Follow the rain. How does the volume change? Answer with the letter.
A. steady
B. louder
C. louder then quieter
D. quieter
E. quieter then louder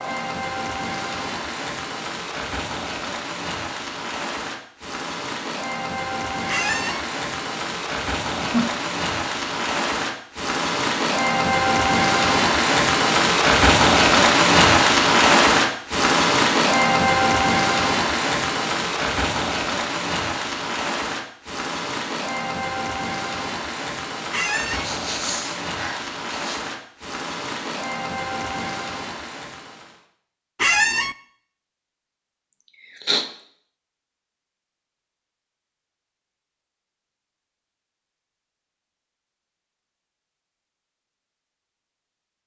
C.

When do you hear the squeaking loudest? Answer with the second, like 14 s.
31 s.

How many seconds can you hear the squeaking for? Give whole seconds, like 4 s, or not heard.
2 s.